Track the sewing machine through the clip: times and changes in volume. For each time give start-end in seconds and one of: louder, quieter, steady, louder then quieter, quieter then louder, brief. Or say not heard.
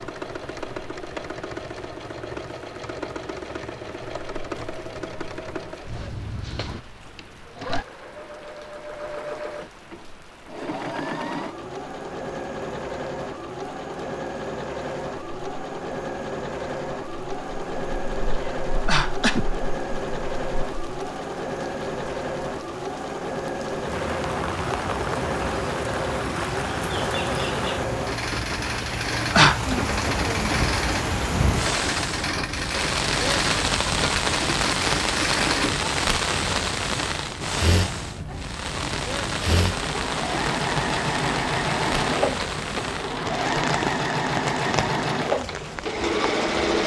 0.0-46.8 louder.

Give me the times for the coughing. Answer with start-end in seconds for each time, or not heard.
18.4-19.4, 28.8-29.8.